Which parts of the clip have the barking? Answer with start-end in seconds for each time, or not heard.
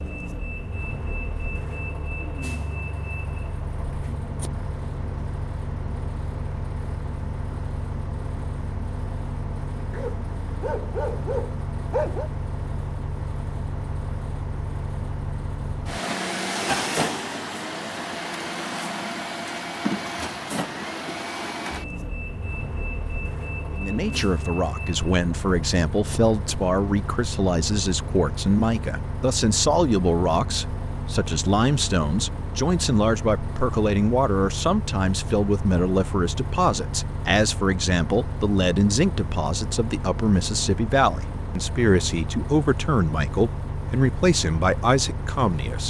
9.9-12.3.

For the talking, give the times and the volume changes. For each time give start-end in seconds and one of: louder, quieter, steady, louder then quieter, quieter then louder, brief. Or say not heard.
23.7-45.8 steady.